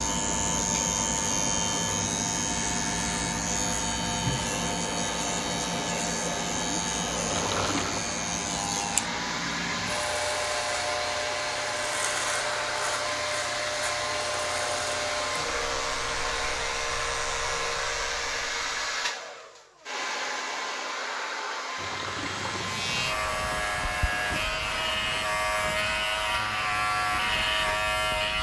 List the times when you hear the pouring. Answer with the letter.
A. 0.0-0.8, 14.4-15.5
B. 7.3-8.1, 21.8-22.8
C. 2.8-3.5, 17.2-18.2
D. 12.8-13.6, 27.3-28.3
B.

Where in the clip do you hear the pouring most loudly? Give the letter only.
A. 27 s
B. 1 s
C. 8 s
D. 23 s
C.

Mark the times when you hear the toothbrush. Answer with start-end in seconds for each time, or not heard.
not heard.